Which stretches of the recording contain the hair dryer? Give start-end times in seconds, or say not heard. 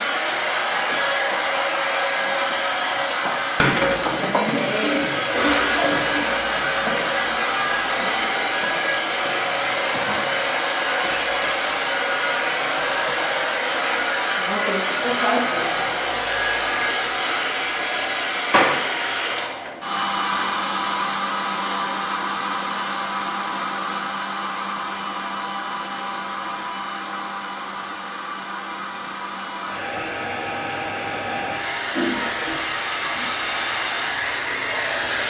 0.0-35.2.